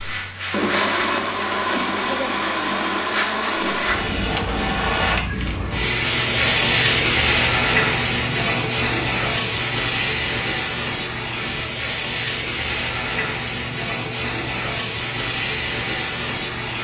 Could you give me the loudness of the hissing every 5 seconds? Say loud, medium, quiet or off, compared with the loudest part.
medium, loud, medium, medium.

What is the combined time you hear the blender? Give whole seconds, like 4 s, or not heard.
5 s.